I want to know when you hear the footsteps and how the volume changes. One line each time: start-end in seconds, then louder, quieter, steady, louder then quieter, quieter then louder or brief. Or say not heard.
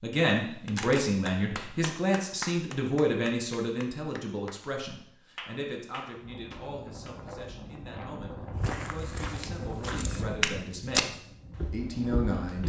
8.5-12.6 louder then quieter.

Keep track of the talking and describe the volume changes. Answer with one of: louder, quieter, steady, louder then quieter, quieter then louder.
quieter then louder.